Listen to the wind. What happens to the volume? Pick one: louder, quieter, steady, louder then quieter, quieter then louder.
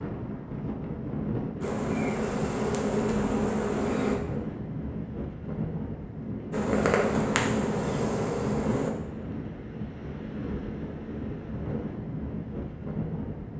steady.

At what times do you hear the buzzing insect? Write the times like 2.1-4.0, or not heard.
1.6-4.2, 6.5-8.9.